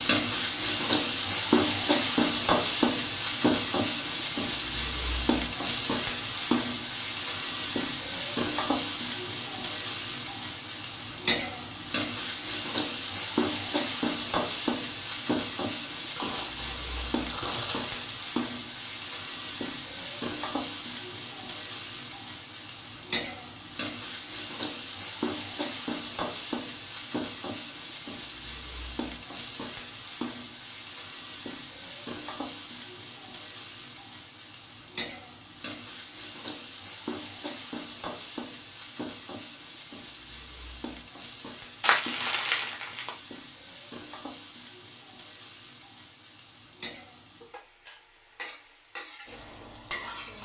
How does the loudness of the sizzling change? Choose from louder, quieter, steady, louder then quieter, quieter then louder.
quieter.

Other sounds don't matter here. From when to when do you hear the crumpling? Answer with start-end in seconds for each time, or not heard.
16.1-17.9, 41.8-43.1.